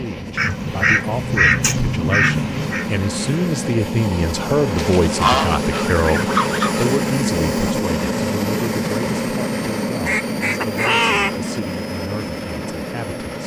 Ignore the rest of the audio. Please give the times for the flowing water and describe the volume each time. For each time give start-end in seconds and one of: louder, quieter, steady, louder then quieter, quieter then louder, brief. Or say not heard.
not heard.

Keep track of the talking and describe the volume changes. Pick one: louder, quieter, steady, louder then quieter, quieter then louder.
louder then quieter.